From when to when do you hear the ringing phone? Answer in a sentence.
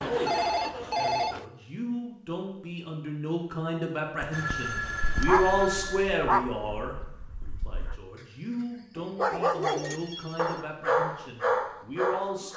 The ringing phone can be heard from 0.0 to 1.4 s, from 4.3 to 6.0 s and from 9.3 to 10.7 s.